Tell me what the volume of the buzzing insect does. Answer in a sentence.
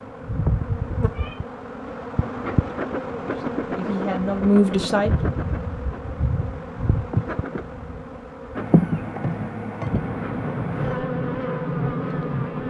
The loudness of the buzzing insect stays about the same.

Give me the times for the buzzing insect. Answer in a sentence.
The buzzing insect can be heard from 0.0 to 12.6 s.